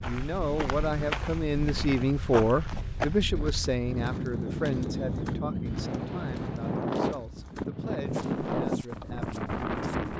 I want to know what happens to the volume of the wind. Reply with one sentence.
The volume of the wind goes up.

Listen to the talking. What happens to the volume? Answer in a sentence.
The loudness of the talking goes down.